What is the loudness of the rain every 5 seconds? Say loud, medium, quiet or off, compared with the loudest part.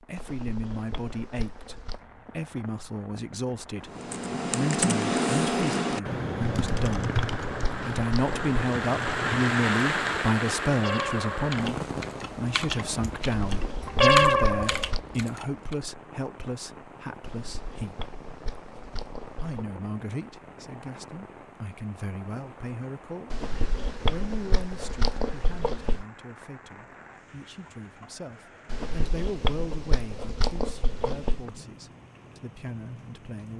quiet, loud, loud, quiet, quiet, quiet, quiet.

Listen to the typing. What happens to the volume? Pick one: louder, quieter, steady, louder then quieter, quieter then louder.
quieter then louder.